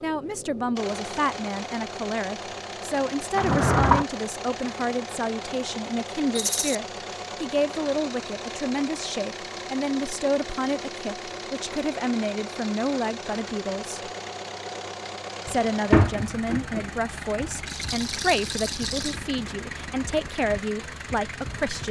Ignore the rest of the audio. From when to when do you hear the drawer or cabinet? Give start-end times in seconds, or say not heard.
3.4-4.0, 15.4-16.9.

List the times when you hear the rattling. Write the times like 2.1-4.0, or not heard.
6.3-6.8, 17.6-19.2.